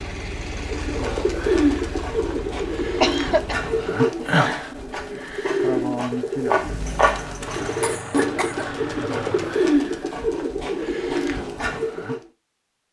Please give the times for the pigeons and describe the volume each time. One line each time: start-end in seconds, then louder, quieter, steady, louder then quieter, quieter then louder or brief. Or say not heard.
0.6-12.2 steady.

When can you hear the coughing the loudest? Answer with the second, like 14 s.
3 s.